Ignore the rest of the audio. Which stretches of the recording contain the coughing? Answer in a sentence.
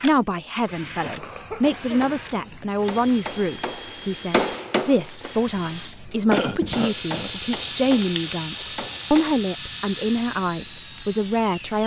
You can hear the coughing from 1.0 to 2.6 s and from 6.3 to 7.3 s.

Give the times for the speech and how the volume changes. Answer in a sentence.
You can hear the speech from 0.0 to 11.8 s, at a steady volume.